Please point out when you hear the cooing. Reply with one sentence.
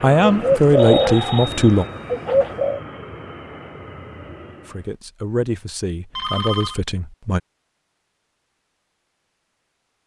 You can hear the cooing from 0.2 to 2.8 s.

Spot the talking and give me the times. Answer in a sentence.
The talking can be heard from 0.0 to 1.9 s and from 4.7 to 7.4 s.